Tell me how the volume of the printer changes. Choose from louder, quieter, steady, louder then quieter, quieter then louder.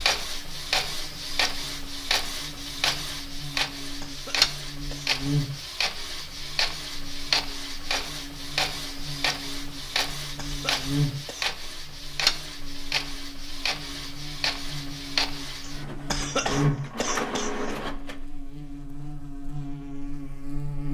steady.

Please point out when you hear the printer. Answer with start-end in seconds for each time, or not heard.
0.0-18.1.